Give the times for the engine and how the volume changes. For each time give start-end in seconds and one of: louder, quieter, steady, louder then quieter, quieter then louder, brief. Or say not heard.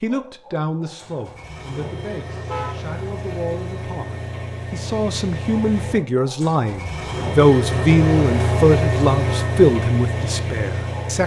0.0-11.2 louder.